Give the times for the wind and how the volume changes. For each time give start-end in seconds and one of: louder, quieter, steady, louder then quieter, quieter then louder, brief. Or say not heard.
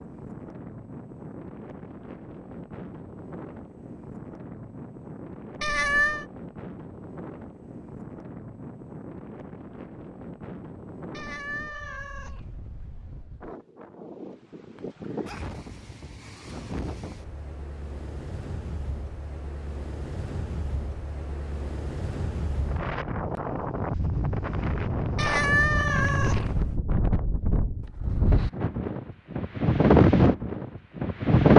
0.0-31.5 louder.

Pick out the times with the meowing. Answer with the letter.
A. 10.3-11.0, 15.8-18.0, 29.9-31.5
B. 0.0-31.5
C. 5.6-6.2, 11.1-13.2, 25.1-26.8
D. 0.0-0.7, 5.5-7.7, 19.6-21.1
C.